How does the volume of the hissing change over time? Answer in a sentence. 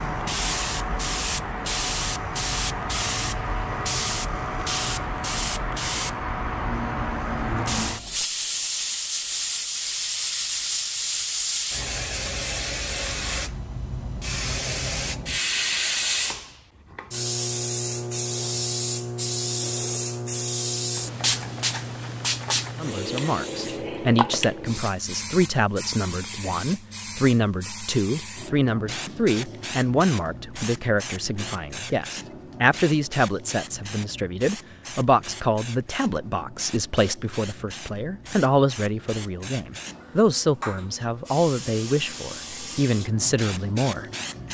The loudness of the hissing goes down.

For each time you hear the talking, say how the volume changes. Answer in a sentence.
The talking can be heard from 22.8 to 44.0 s, at a steady volume.